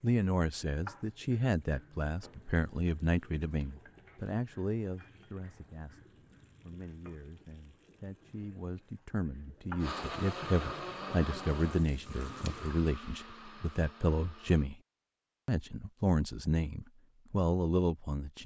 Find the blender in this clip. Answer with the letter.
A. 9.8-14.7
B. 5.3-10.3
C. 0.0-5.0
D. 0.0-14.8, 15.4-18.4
A.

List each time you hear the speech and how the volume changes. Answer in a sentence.
You can hear the speech from 0.0 to 14.8 s, getting quieter then louder; and briefly from 15.4 to 18.4 s.